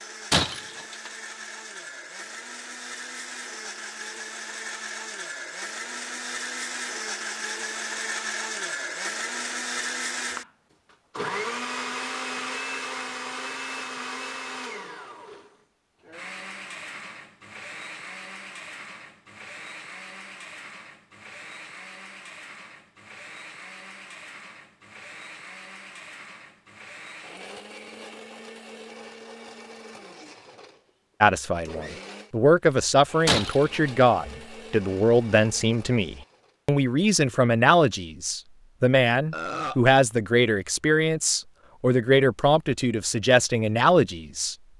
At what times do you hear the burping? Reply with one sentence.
You can hear the burping from 39.3 to 39.8 s.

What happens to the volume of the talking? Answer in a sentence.
The volume of the talking stays about the same.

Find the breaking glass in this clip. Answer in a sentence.
The breaking glass can be heard from 0.3 to 1.1 s and from 33.2 to 34.0 s.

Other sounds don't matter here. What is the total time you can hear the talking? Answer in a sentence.
You can hear the talking for 13 seconds altogether.